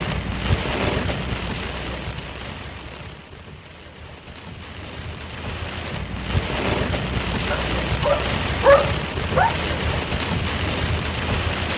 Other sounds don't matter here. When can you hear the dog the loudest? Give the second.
9 s.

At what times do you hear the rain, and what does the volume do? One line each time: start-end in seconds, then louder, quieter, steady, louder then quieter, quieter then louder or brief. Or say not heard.
0.0-11.7 quieter then louder.